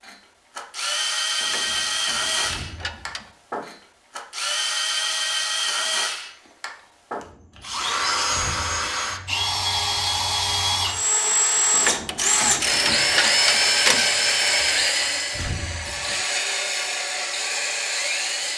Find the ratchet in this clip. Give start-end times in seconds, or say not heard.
1.4-3.3, 11.7-14.1.